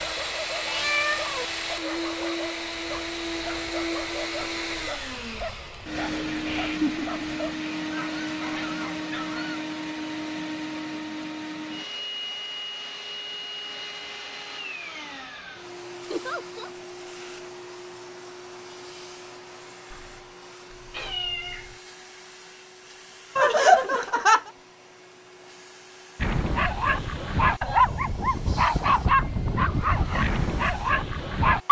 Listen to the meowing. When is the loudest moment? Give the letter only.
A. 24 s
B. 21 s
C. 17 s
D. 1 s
D.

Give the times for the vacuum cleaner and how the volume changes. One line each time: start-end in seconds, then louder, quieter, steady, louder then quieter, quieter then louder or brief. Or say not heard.
0.0-31.6 quieter.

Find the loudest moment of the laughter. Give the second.
24 s.